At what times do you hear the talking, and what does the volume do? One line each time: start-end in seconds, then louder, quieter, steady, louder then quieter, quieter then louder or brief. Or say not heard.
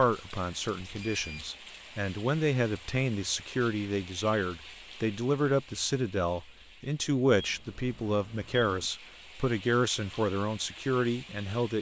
0.0-11.7 steady.